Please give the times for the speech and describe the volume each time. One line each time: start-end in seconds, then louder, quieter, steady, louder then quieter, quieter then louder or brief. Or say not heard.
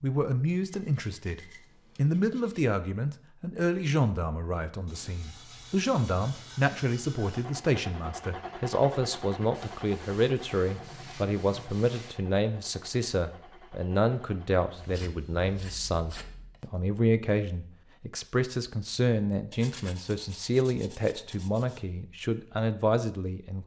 0.0-23.6 steady.